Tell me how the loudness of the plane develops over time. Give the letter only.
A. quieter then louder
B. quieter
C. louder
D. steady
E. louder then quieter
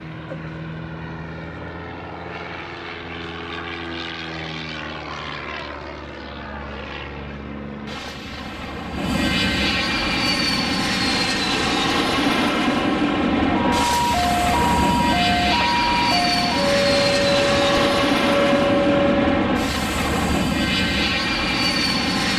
C.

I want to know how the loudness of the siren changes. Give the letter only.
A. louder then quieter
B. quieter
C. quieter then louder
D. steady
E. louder
D.